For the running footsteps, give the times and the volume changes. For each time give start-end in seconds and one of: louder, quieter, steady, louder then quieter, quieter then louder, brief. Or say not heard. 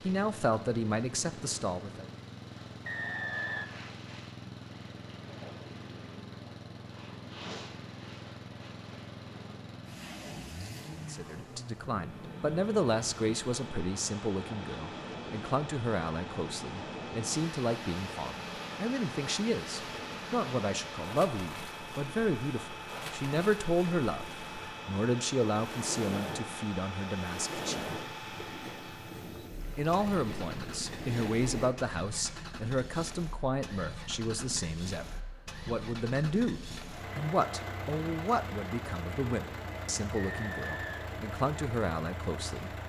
not heard.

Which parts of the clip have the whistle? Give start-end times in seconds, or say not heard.
2.9-3.7, 40.2-41.1.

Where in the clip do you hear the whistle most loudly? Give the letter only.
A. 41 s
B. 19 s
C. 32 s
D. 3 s
D.